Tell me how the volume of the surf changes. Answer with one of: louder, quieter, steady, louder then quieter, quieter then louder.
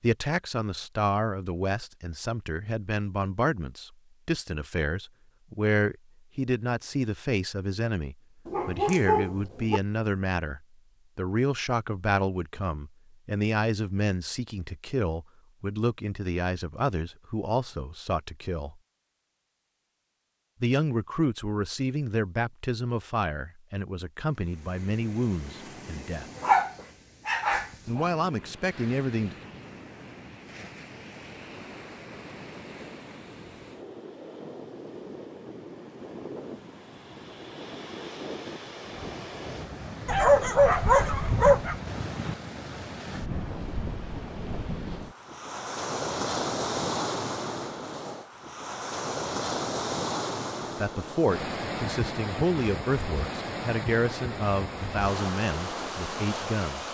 louder.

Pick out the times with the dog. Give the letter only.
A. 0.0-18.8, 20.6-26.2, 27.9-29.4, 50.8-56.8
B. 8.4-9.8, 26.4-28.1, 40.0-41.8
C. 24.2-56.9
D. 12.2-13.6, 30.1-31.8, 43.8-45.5
B.